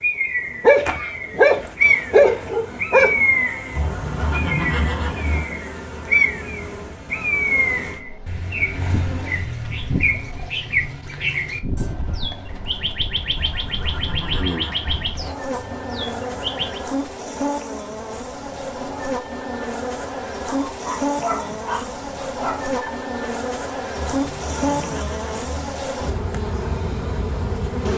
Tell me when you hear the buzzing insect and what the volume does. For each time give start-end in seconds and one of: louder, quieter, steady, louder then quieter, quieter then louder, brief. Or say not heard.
0.0-27.9 louder.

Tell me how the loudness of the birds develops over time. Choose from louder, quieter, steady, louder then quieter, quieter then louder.
quieter.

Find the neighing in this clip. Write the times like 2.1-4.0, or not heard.
3.8-5.5, 13.3-15.3, 23.9-25.9.